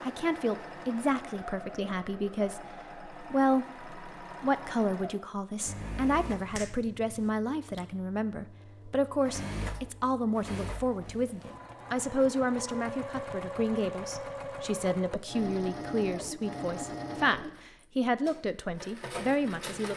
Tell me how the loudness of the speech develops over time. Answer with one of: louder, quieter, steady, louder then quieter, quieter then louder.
steady.